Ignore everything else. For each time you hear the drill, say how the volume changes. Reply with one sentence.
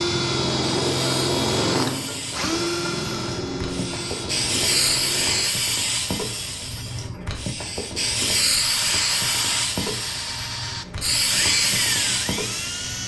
The drill can be heard from 0.0 to 5.5 s, getting quieter; and from 8.6 to 13.0 s, at a steady volume.